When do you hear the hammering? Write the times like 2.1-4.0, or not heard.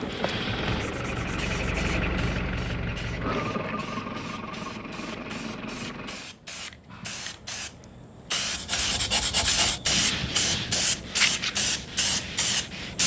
not heard.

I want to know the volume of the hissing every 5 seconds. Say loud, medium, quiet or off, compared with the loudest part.
quiet, medium, loud.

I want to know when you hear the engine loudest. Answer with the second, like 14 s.
2 s.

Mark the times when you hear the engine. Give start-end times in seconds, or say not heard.
0.0-6.3.